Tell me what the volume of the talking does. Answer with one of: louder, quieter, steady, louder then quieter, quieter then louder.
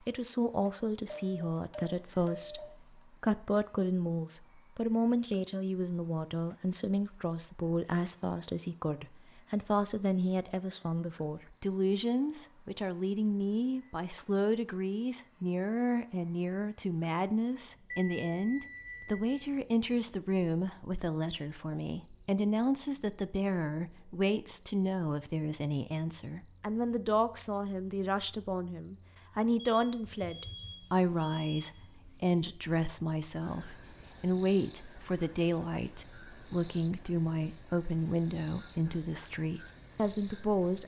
steady.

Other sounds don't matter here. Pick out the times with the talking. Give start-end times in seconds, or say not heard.
0.1-40.8.